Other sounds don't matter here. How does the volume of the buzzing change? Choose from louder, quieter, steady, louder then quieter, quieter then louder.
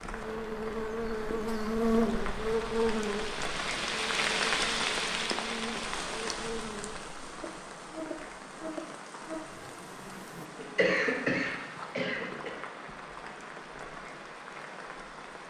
quieter.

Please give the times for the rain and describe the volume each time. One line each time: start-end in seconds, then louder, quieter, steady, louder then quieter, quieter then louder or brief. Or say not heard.
0.0-15.4 louder then quieter.